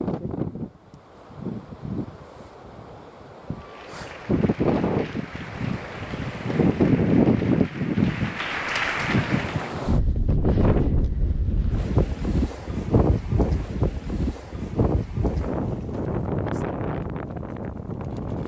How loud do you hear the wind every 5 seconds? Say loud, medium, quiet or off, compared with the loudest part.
medium, loud, loud, medium.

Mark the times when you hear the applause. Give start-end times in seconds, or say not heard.
3.5-9.9.